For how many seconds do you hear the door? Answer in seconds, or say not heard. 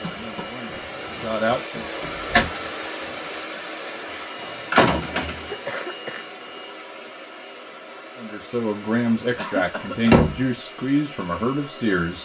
2 s.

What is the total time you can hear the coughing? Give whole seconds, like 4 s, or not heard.
2 s.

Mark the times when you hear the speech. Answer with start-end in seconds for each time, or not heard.
0.0-1.9, 8.2-12.2.